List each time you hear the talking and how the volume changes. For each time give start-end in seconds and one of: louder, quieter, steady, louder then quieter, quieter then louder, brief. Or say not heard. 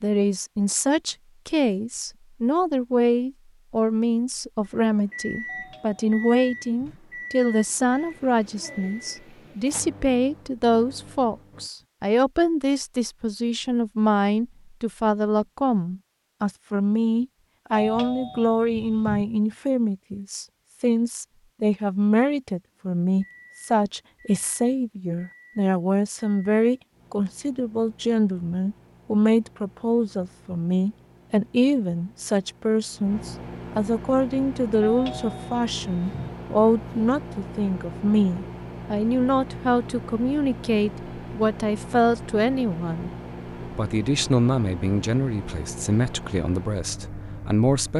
0.0-47.9 steady.